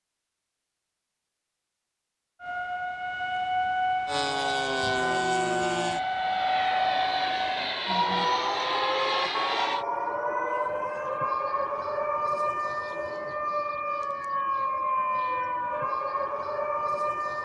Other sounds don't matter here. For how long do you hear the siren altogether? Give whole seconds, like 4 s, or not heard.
15 s.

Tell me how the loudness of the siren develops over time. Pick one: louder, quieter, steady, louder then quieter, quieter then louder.
steady.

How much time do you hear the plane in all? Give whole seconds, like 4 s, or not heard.
6 s.